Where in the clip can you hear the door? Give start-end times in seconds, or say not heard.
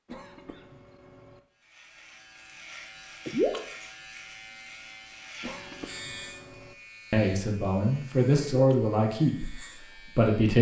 not heard.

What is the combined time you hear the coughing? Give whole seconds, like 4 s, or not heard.
3 s.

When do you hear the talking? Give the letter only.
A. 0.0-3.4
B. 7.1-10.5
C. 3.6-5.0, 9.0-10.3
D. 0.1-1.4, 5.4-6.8
B.